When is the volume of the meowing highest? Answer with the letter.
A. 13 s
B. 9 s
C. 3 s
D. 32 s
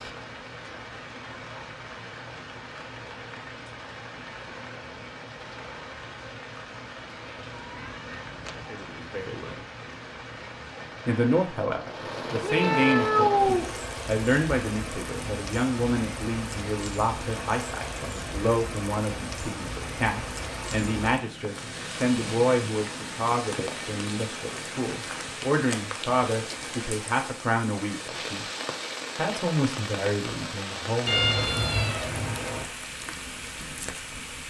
A.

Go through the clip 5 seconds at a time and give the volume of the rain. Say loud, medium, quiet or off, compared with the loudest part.
medium, medium, loud, loud, loud, loud, loud.